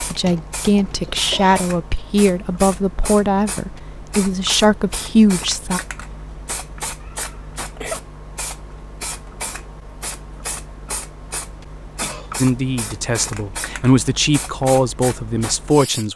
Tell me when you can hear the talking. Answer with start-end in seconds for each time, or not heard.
0.0-5.8, 12.4-16.1.